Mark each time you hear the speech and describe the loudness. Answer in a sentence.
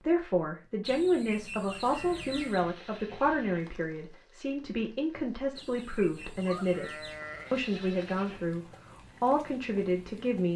The speech can be heard from 0.0 to 10.5 s, at a steady volume.